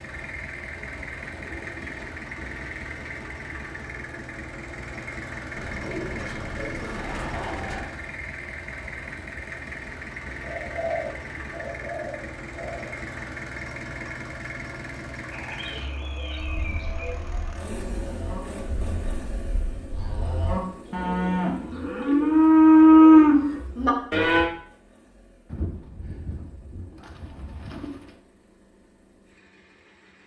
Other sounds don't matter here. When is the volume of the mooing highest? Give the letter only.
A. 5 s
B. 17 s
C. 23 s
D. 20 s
C.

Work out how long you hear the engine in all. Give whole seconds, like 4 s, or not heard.
30 s.